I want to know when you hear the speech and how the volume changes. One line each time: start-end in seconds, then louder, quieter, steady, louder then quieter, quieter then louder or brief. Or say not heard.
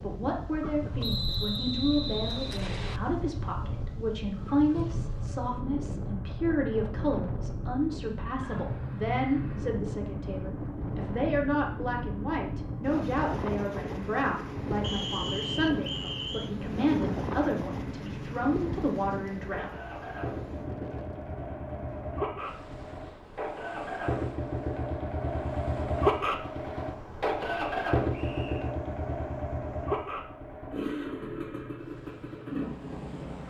0.0-19.7 steady.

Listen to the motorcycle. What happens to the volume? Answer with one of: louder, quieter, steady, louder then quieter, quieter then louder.
louder.